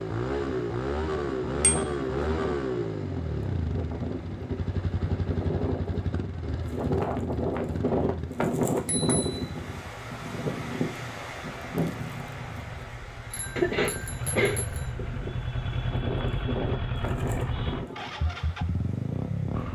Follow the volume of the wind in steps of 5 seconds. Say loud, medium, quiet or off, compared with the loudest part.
medium, loud, medium, medium.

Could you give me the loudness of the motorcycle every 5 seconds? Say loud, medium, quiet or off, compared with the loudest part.
loud, medium, medium, loud.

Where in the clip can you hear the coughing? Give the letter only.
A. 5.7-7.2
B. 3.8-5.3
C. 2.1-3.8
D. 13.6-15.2
D.